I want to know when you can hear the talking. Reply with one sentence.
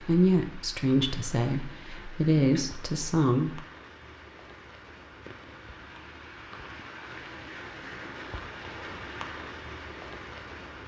The talking can be heard from 0.0 to 3.6 s.